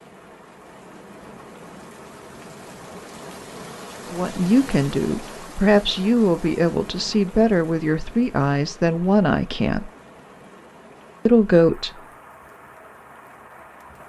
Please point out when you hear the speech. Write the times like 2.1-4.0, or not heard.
4.1-9.9, 11.2-11.9.